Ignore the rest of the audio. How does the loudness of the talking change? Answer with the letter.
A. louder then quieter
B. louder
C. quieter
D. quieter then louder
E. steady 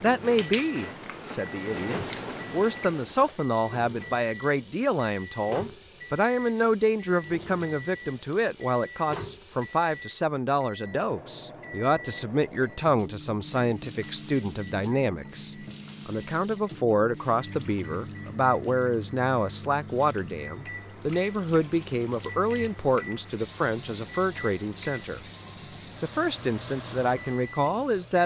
E.